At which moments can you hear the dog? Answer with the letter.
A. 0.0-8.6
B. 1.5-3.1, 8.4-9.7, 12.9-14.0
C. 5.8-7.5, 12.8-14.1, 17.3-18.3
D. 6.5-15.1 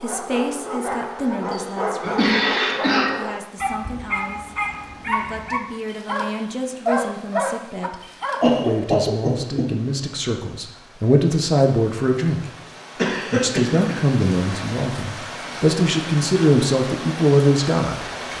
A.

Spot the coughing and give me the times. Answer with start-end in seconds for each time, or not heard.
1.5-3.1, 8.4-9.7, 12.9-14.0.